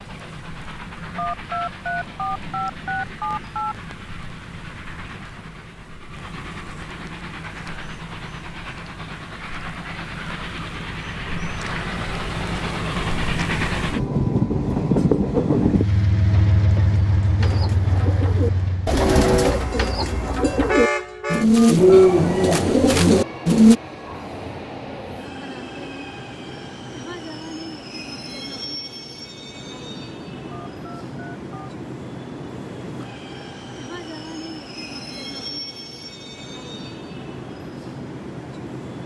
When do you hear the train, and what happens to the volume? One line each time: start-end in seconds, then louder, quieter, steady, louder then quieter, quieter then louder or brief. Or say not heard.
0.0-39.0 louder then quieter.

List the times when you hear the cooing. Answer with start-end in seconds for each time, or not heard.
17.4-23.8.